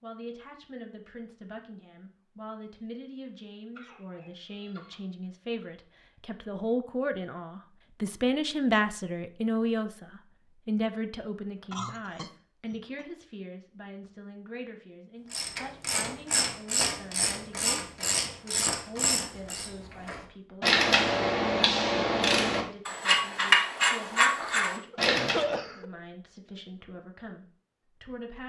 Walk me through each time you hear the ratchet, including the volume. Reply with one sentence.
You can hear the ratchet from 15.3 to 25.5 s, getting louder.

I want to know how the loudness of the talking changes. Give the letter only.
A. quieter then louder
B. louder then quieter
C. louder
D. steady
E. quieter
B.